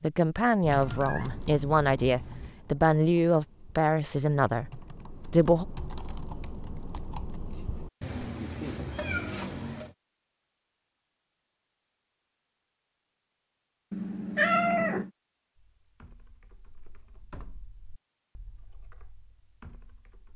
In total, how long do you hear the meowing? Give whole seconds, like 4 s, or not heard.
5 s.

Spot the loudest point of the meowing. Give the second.
15 s.